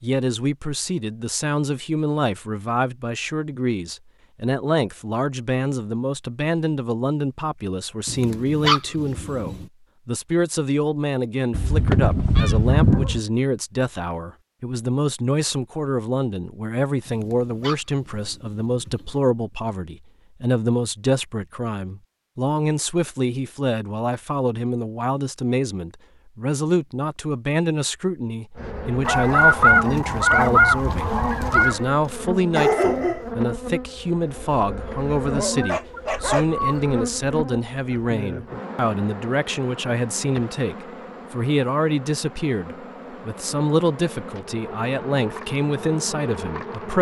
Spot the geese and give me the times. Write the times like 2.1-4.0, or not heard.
11.5-13.2, 29.1-31.8.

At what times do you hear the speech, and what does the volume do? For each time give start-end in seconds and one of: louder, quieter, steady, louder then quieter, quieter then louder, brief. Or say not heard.
0.0-46.9 steady.